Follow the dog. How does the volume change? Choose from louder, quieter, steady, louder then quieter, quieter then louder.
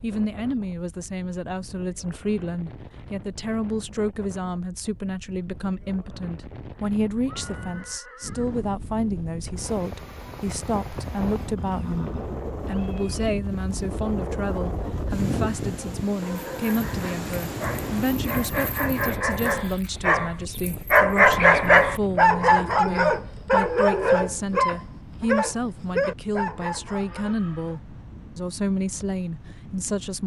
louder then quieter.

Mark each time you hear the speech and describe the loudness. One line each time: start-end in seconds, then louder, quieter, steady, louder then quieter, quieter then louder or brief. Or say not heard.
0.0-30.2 steady.